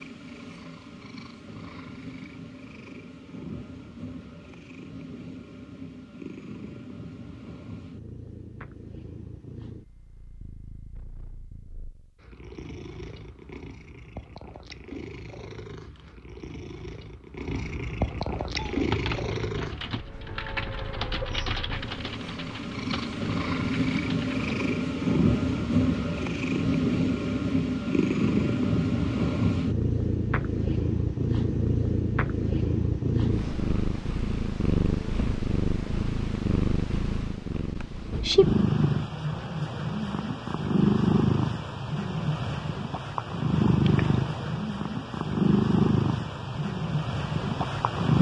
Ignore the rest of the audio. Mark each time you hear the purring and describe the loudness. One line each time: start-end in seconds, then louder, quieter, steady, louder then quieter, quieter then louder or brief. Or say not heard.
0.0-48.1 louder.